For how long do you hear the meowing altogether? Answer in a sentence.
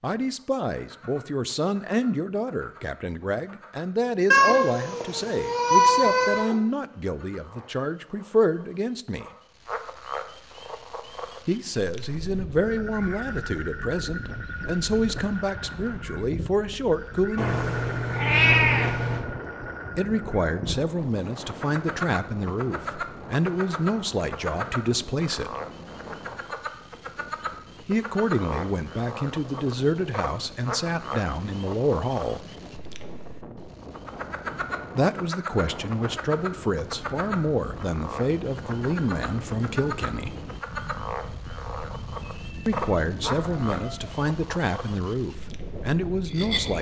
You can hear the meowing for 6 seconds altogether.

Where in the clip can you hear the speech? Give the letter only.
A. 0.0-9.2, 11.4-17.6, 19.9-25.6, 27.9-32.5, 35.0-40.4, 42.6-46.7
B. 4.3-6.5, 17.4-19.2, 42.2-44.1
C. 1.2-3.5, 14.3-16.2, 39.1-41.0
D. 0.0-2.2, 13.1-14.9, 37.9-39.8
A.